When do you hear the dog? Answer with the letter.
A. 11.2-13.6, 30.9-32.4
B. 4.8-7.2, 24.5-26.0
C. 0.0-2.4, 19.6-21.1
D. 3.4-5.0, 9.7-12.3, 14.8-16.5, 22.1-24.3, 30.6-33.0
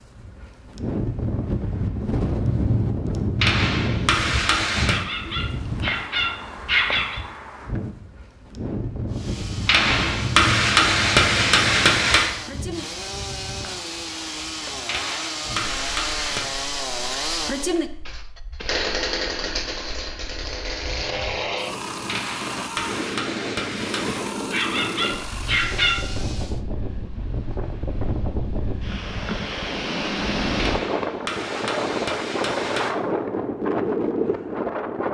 B.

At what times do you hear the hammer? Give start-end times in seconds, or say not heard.
3.4-5.0, 9.7-12.3, 14.8-16.5, 22.1-24.3, 30.6-33.0.